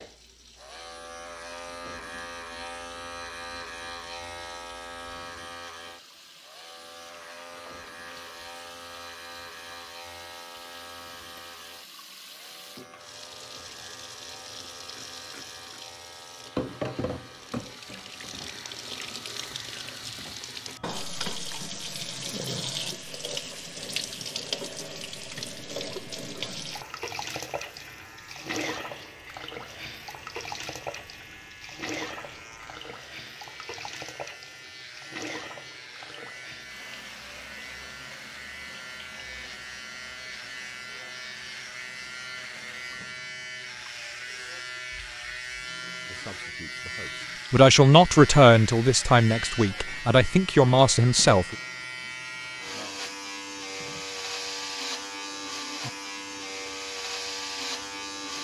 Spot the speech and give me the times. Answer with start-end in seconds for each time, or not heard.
46.0-51.5.